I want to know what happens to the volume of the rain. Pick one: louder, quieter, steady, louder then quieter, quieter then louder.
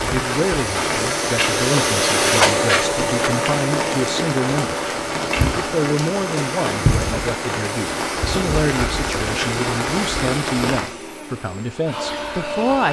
steady.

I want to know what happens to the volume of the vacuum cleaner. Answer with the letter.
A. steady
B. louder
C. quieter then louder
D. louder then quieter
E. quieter
E.